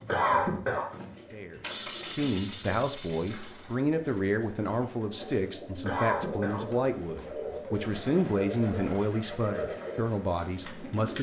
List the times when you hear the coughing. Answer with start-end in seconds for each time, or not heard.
0.1-0.9, 5.8-6.8.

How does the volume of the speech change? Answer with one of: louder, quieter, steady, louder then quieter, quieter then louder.
steady.